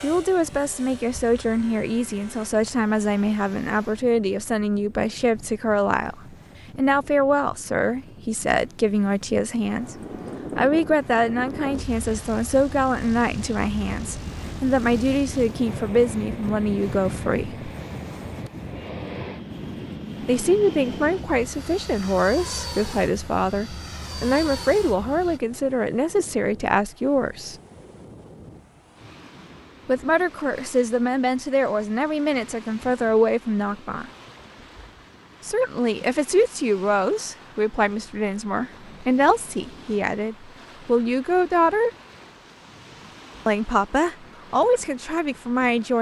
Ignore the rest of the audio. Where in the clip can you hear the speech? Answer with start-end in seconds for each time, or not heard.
0.0-9.9, 10.6-17.7, 20.2-27.6, 29.9-34.1, 35.5-41.9, 43.5-45.9.